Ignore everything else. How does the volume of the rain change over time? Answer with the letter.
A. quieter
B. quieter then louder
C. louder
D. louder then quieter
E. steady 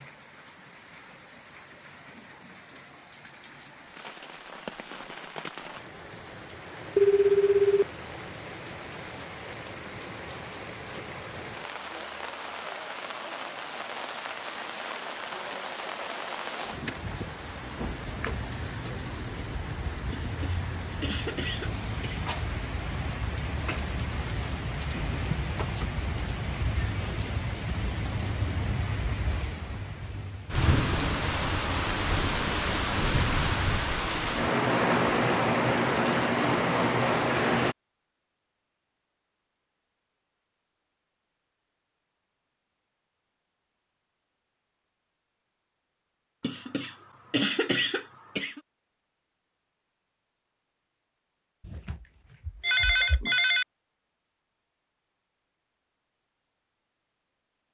C.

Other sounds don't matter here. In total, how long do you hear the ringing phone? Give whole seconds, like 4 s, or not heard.
3 s.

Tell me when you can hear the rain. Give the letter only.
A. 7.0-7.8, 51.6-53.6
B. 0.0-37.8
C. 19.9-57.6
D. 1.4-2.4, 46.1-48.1
B.